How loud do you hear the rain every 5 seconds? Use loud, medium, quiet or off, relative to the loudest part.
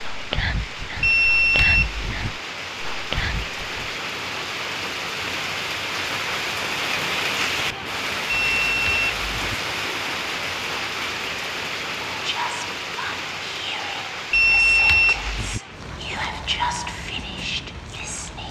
medium, loud, loud, medium.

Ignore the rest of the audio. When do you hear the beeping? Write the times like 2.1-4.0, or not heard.
1.0-2.3, 8.5-9.6, 14.3-15.6.